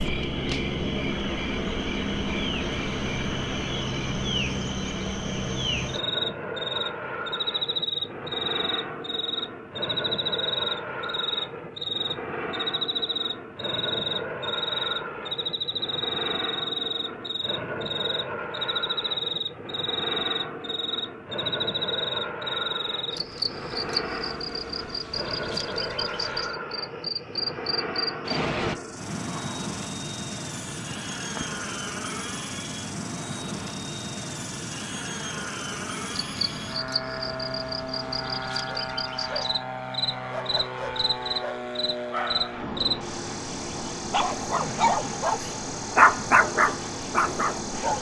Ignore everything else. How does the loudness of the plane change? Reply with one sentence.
The volume of the plane stays about the same.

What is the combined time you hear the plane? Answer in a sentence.
The plane can be heard for 48 seconds in total.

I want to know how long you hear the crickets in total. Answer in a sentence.
You can hear the crickets for 48 seconds altogether.